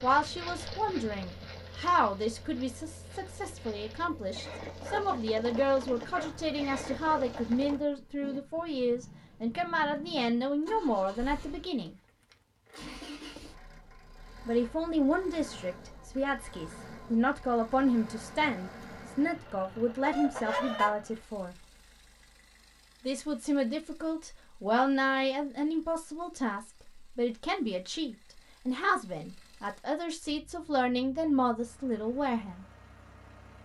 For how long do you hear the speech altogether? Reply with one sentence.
The speech can be heard for 29 seconds in total.